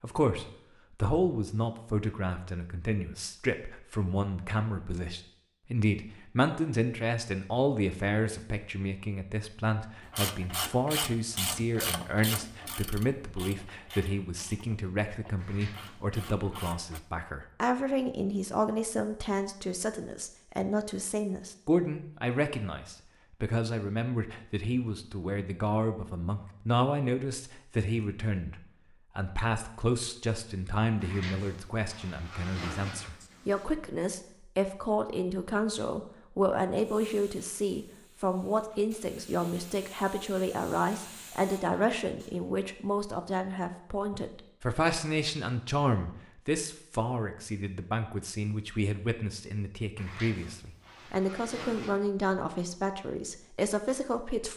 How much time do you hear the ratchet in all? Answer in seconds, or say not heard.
7 s.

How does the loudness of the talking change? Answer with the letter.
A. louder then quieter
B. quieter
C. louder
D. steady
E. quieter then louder
D.